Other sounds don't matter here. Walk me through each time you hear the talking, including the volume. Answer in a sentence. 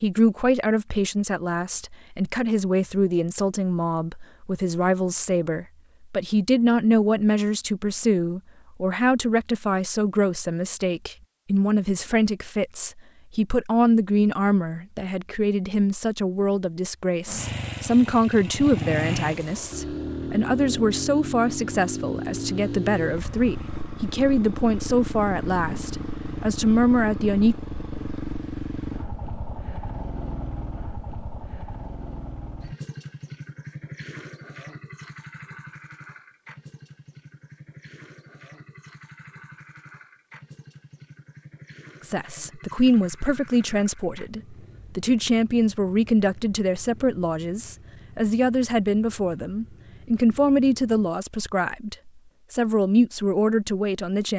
The talking can be heard from 0.0 to 27.6 s, at a steady volume; and from 42.0 to 54.3 s, at a steady volume.